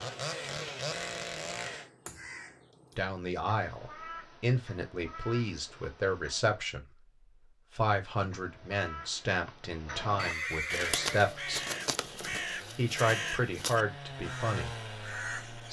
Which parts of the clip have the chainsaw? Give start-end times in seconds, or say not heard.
0.0-1.9, 10.8-15.6.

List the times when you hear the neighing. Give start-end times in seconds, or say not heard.
10.2-11.3.